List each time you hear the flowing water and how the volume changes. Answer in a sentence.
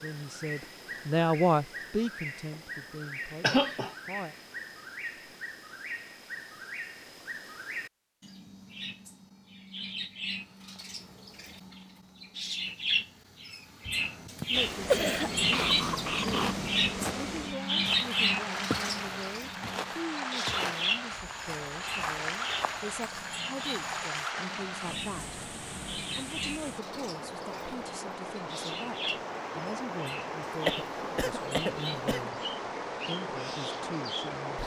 You can hear the flowing water from 14.5 to 34.6 s, at a steady volume.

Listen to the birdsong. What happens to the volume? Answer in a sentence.
The volume of the birdsong goes up, then down.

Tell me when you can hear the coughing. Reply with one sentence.
You can hear the coughing from 3.4 to 4.0 s, from 13.8 to 16.6 s and from 30.6 to 32.3 s.